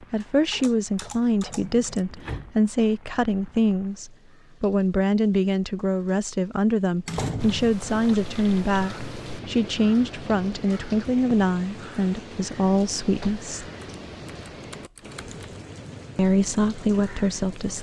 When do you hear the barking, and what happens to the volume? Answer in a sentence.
You can't hear the barking here.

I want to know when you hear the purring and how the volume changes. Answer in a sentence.
The purring can't be heard in this clip.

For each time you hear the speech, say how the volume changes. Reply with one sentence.
You can hear the speech from 0.0 to 13.7 s, at a steady volume; and briefly from 16.1 to 17.7 s.